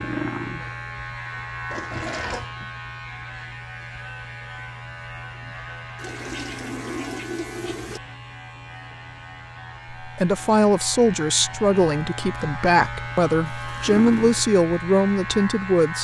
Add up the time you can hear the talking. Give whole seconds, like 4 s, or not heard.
6 s.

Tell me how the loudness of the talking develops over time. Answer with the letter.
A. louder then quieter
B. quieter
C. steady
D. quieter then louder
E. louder
C.